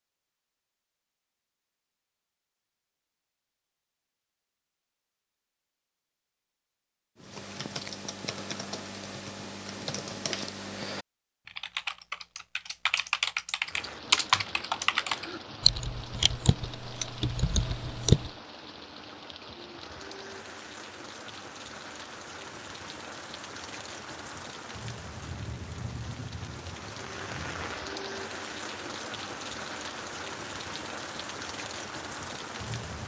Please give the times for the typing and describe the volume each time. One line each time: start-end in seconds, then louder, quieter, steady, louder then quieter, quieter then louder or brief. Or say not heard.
7.2-18.3 louder then quieter.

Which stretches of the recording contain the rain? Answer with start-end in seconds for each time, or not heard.
13.6-33.0.